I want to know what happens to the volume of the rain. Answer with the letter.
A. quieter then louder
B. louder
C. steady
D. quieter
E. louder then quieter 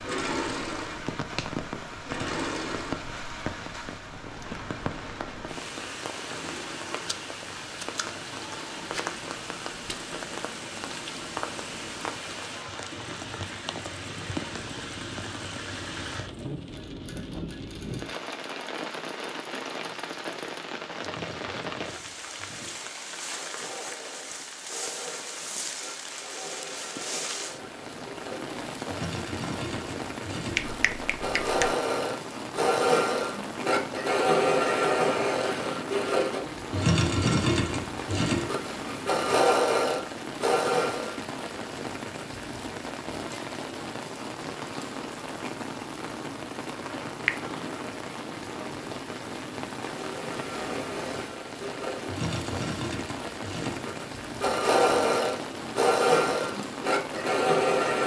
C.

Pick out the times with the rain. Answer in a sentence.
You can hear the rain from 0.0 to 58.0 s.